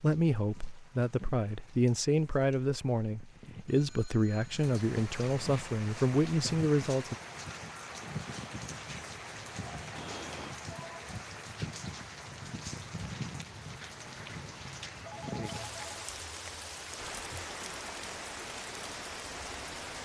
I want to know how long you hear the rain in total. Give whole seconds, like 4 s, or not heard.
20 s.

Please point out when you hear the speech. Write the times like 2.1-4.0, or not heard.
0.0-7.2.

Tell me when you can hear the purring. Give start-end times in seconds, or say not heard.
not heard.